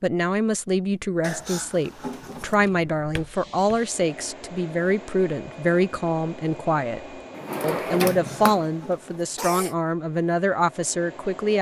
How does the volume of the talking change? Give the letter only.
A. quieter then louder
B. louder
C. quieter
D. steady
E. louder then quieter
D.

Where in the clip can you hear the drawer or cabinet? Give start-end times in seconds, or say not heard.
2.5-3.8, 7.3-8.7.